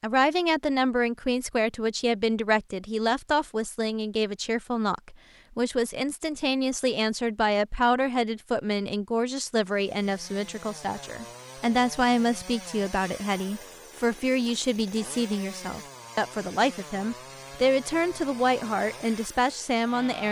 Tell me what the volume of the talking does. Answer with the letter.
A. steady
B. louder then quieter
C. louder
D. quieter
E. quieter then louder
A.